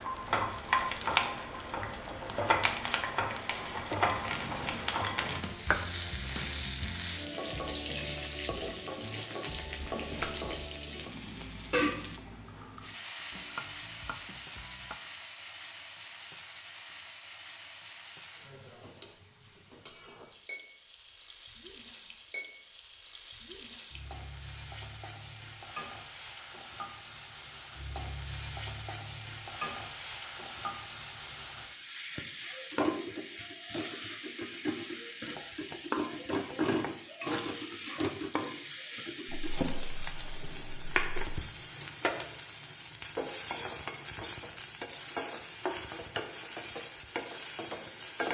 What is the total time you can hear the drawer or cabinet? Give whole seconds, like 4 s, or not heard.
3 s.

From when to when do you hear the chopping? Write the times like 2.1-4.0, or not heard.
13.3-15.0, 35.3-37.0.